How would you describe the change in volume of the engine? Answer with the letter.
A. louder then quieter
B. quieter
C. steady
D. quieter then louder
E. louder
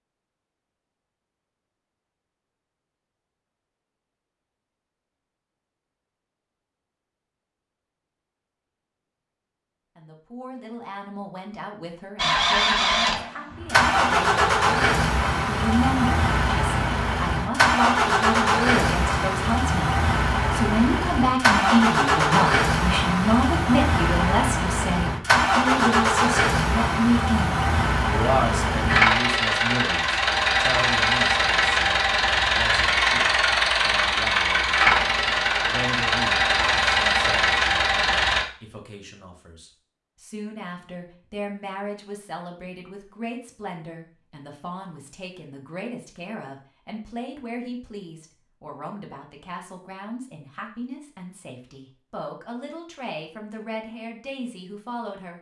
C.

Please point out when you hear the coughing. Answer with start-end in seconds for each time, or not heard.
not heard.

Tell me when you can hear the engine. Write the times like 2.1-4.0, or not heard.
12.2-38.5.